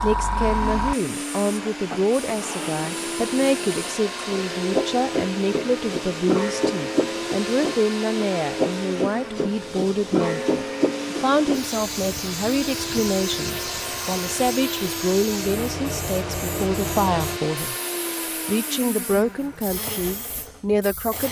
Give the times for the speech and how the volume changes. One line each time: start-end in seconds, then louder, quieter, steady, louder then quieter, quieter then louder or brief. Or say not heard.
0.0-17.8 steady
18.4-21.2 brief.